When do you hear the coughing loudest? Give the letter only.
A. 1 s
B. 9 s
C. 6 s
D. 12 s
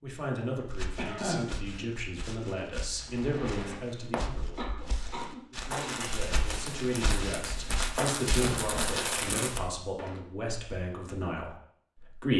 A.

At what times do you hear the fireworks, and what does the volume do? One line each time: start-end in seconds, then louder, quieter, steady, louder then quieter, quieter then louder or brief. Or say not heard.
3.0-4.2 brief
5.5-10.2 louder.